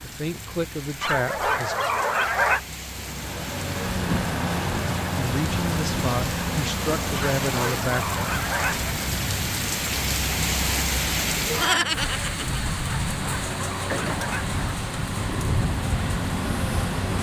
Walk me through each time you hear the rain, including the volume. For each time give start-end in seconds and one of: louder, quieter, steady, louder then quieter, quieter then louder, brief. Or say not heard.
0.0-17.1 louder then quieter.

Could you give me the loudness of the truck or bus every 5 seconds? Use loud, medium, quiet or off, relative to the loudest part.
loud, loud, medium, loud.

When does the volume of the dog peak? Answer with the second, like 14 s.
2 s.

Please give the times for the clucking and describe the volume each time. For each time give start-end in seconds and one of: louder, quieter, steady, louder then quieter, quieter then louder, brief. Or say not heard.
not heard.